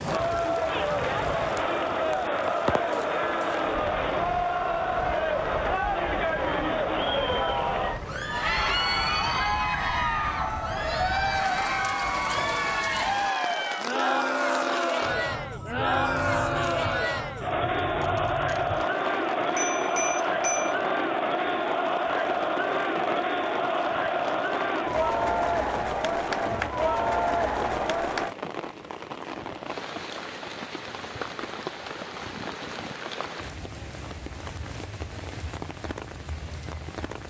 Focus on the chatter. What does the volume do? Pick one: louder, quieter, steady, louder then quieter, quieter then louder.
steady.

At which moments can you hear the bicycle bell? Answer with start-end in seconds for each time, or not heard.
19.6-20.8.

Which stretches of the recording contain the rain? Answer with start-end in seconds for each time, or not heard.
0.0-37.2.